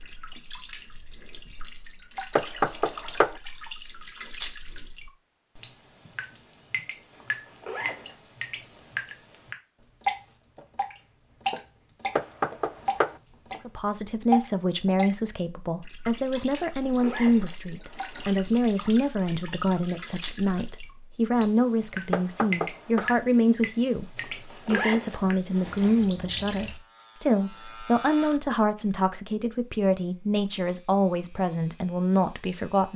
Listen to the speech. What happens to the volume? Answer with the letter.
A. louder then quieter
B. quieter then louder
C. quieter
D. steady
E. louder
D.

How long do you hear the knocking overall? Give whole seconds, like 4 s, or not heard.
3 s.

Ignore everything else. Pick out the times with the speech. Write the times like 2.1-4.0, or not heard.
13.7-32.9.